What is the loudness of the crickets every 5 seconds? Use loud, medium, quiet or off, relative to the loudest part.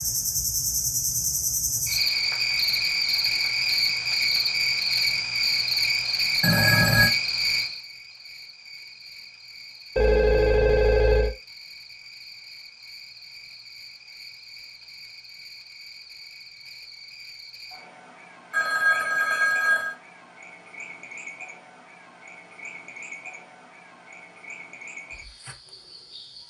loud, loud, quiet, quiet, quiet, quiet.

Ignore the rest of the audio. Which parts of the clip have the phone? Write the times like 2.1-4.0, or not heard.
6.4-7.1, 9.9-11.3, 18.5-19.9.